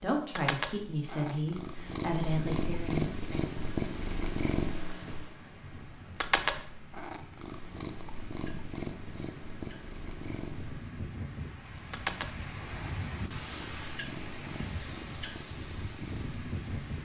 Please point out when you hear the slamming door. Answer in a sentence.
The slamming door can't be heard in this clip.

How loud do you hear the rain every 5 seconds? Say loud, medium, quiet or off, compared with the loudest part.
off, medium, loud, loud.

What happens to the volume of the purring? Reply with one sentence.
The loudness of the purring goes down.